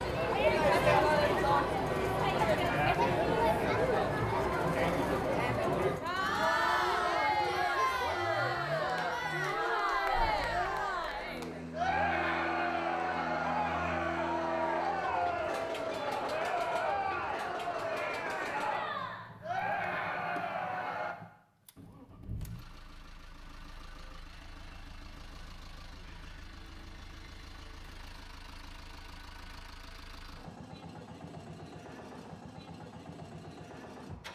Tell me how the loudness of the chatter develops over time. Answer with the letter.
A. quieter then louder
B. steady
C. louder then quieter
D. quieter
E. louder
D.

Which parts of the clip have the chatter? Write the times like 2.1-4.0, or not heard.
0.0-21.1.